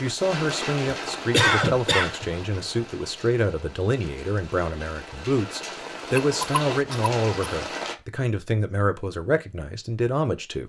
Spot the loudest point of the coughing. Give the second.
2 s.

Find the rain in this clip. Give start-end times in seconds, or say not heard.
0.0-8.0.